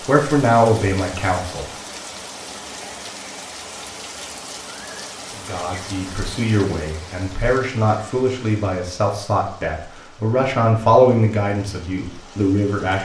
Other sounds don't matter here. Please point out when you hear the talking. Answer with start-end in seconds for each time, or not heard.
0.1-1.6, 5.4-12.9.